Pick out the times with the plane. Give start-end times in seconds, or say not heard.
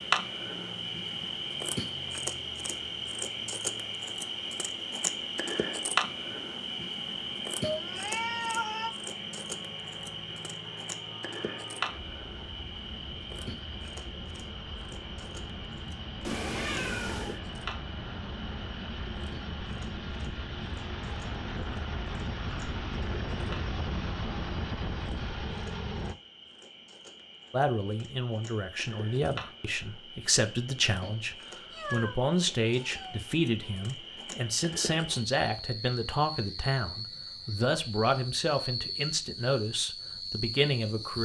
0.0-26.1.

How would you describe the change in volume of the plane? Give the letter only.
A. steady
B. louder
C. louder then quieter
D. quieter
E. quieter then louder
B.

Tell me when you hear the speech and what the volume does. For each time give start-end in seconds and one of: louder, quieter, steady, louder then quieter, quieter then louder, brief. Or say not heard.
27.5-41.2 steady.